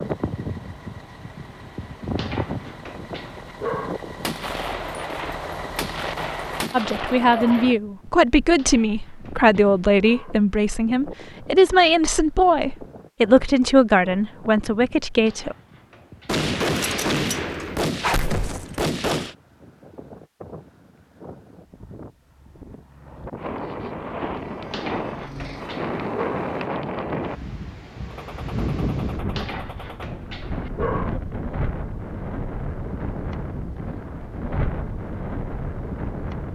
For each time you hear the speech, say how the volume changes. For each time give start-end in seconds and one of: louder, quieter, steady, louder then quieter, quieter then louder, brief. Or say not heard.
6.7-15.6 steady.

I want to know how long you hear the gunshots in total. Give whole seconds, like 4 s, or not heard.
9 s.